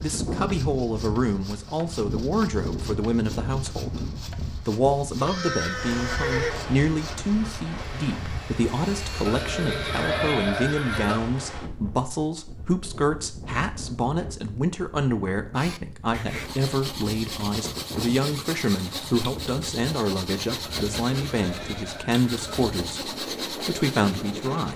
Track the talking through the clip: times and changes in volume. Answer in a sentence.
You can hear the talking from 0.0 to 24.7 s, at a steady volume.